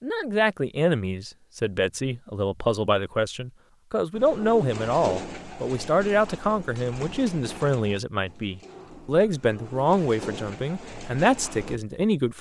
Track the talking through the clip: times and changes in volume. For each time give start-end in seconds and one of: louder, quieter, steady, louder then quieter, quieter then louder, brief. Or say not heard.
0.0-12.3 steady.